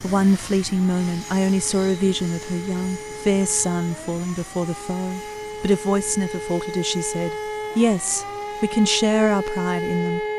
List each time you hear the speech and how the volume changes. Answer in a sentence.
The speech can be heard from 0.0 to 10.2 s, at a steady volume.